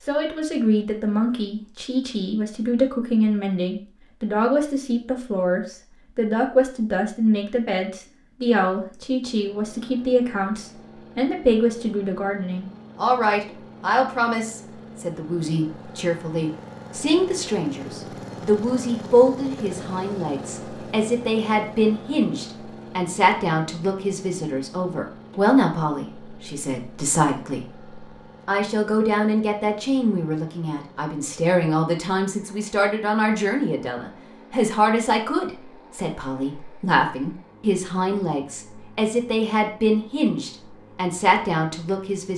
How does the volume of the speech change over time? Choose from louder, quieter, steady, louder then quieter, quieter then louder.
steady.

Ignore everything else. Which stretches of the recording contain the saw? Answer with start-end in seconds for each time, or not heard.
not heard.